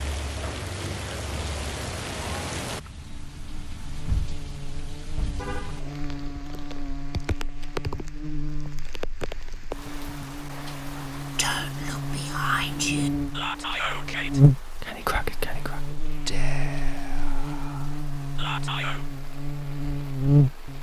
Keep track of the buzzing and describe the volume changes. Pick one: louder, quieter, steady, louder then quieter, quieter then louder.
louder then quieter.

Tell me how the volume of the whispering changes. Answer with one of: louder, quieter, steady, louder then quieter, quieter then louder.
quieter.